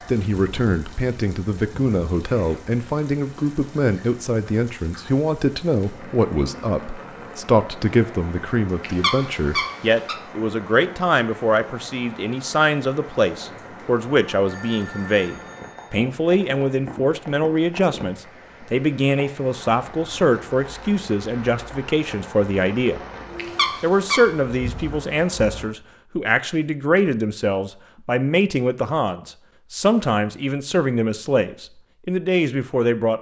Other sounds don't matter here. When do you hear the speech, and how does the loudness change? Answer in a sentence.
The speech can be heard from 0.1 to 23.0 s, at a steady volume; and from 23.8 to 33.1 s, at a steady volume.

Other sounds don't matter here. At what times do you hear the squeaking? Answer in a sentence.
You can hear the squeaking from 8.8 to 10.2 s and from 23.4 to 24.2 s.